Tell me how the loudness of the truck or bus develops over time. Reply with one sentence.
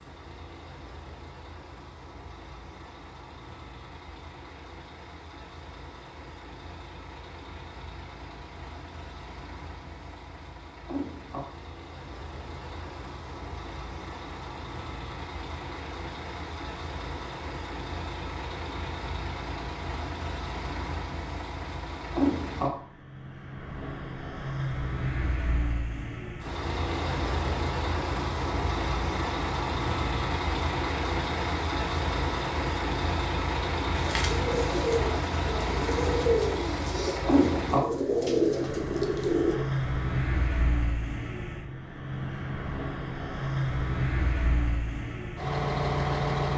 The volume of the truck or bus goes up.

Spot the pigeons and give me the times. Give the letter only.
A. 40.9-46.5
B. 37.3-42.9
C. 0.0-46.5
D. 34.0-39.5
D.